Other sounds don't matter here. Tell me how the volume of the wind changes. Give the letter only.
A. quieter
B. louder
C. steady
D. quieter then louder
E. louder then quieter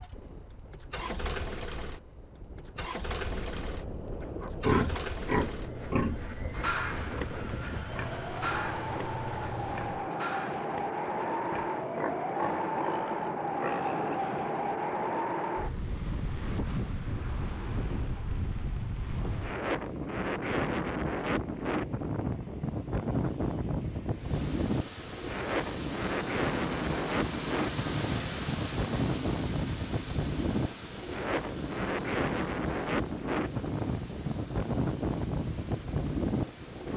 B.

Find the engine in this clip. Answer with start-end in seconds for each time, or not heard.
0.0-10.1, 24.1-36.9.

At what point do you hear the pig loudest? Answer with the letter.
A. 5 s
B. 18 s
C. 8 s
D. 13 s
A.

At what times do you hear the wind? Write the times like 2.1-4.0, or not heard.
0.0-36.9.